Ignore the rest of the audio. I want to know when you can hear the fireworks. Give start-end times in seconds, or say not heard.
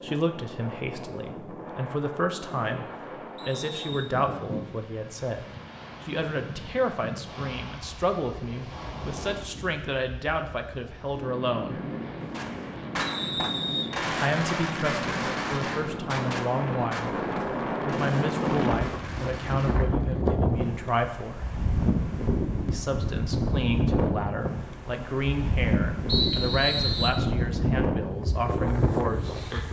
12.2-19.9.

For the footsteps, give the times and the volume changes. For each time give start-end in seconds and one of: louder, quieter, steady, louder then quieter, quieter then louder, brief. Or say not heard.
not heard.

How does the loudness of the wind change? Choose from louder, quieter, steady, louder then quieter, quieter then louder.
louder.